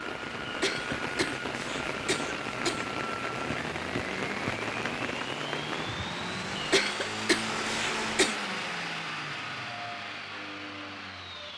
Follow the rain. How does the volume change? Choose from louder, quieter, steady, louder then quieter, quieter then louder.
steady.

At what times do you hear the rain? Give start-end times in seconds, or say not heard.
0.0-6.8.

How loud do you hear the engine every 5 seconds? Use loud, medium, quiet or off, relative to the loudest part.
medium, loud, medium.